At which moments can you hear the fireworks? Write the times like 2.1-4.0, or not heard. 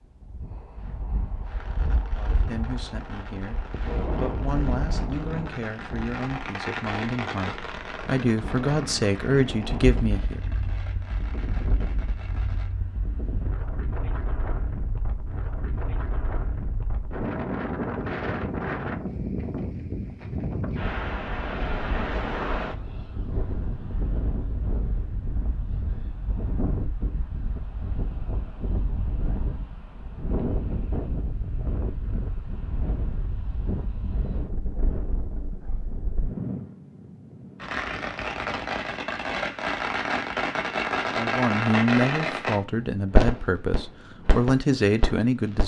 1.4-12.8, 37.5-45.6.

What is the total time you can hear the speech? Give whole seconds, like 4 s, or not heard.
13 s.